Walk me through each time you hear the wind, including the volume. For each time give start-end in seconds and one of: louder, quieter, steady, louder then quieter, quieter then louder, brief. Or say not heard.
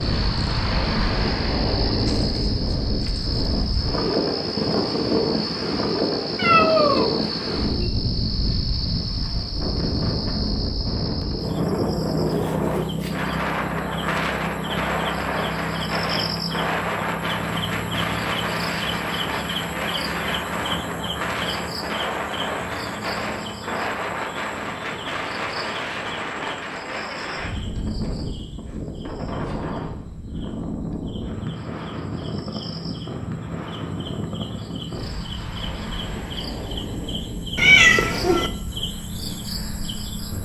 0.0-40.4 quieter.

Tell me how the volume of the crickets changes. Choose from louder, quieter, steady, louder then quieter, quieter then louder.
quieter then louder.